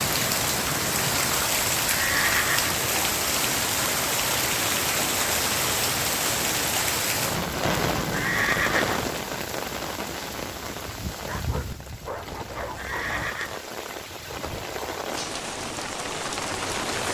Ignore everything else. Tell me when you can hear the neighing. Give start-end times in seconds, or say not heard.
1.9-2.9, 8.1-9.1, 12.8-13.6.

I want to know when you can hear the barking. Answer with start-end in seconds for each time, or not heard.
11.2-13.3.